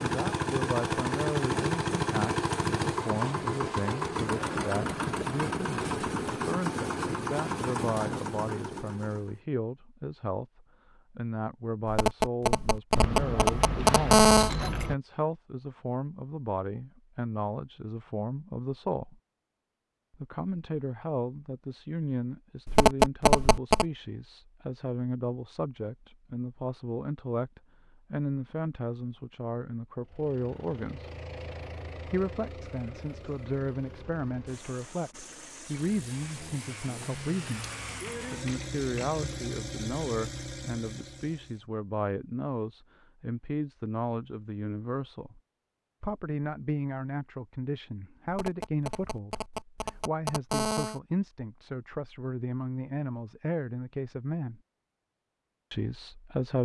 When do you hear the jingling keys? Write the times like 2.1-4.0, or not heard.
12.9-14.9, 37.3-39.5.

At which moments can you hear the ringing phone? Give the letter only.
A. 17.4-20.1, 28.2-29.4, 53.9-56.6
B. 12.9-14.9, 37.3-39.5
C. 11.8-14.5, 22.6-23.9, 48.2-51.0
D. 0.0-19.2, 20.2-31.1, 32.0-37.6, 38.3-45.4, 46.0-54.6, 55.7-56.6
C.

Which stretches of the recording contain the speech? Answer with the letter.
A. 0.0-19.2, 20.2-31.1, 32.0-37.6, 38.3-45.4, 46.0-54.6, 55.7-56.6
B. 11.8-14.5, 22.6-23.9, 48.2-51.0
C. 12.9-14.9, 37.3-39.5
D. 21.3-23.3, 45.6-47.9
A.